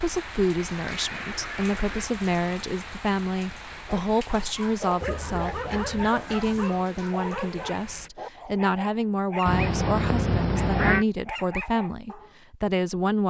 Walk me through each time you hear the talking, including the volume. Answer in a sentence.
You can hear the talking from 0.0 to 13.2 s, at a steady volume.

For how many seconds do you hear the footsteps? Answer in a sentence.
The footsteps can't be heard in this clip.